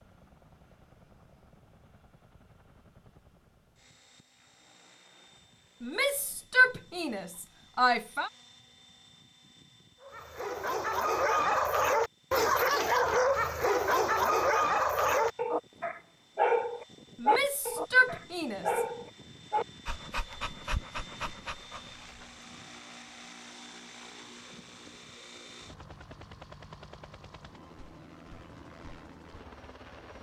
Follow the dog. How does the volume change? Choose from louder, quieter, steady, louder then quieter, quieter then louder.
quieter.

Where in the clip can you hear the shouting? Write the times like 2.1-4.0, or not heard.
5.8-8.3, 17.2-18.8.